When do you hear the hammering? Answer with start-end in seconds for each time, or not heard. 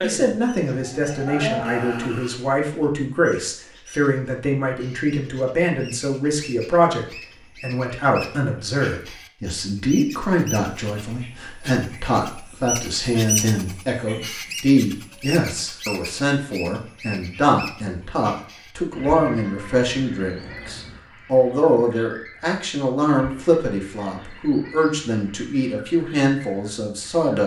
not heard.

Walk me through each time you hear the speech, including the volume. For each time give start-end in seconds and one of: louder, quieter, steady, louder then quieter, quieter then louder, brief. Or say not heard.
0.0-27.4 steady.